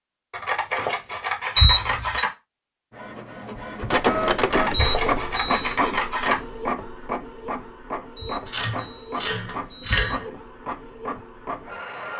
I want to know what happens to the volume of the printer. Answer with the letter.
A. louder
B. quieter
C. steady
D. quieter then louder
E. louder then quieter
B.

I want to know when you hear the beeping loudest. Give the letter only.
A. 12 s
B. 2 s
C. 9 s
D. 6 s
B.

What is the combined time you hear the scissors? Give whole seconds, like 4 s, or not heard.
6 s.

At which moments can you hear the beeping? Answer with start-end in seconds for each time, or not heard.
1.6-2.2, 4.7-5.8, 8.2-10.2.